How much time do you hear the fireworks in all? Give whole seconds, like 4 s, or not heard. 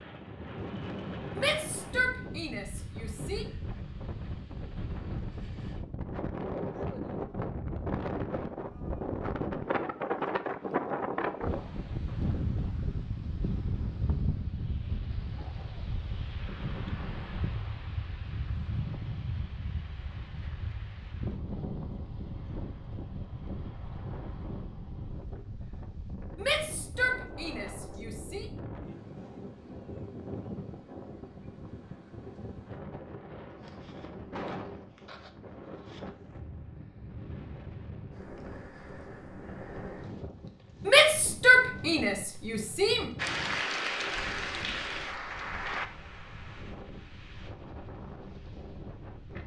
not heard.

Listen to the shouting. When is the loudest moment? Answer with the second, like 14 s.
41 s.